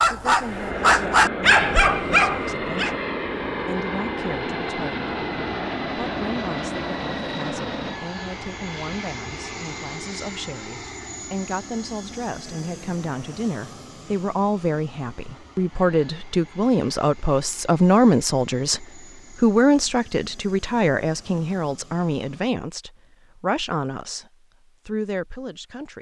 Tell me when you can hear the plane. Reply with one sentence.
You can hear the plane from 0.0 to 22.6 s.